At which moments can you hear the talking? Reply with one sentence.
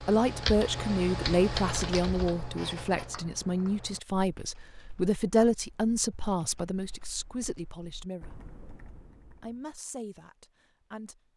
You can hear the talking from 0.0 to 8.3 s and from 9.4 to 11.2 s.